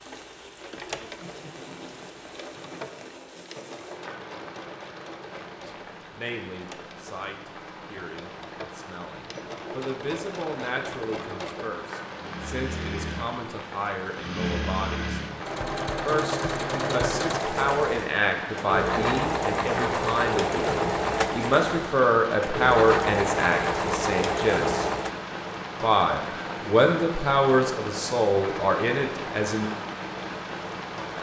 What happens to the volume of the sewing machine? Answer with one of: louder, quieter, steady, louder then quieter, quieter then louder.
louder.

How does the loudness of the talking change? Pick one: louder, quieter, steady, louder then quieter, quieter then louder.
louder.